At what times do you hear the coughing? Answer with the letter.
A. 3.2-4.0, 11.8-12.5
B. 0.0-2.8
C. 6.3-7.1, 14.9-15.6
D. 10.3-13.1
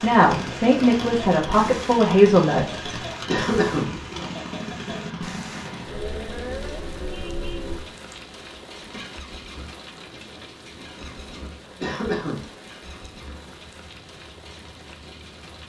A.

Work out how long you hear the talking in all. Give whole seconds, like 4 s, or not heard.
3 s.